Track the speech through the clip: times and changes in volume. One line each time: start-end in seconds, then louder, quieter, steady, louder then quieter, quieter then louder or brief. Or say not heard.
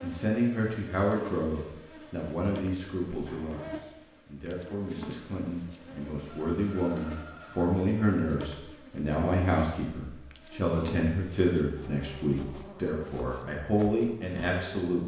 0.0-15.0 quieter then louder.